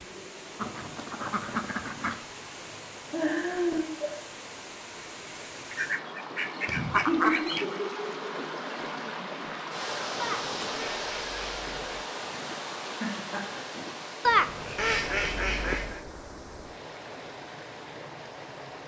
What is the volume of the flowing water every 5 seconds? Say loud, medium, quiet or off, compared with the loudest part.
medium, loud, loud, medium.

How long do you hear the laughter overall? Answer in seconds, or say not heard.
3 s.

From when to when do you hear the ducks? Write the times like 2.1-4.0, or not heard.
0.6-2.2, 5.7-7.7, 10.2-12.1, 14.2-16.0.